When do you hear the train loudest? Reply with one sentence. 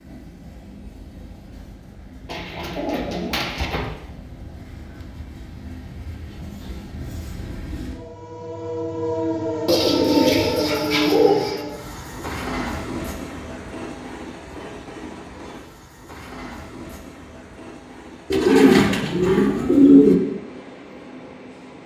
The volume of the train peaks at 11 seconds.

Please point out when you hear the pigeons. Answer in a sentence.
You can hear the pigeons from 2.2 to 3.9 s, from 9.7 to 11.6 s and from 18.3 to 20.1 s.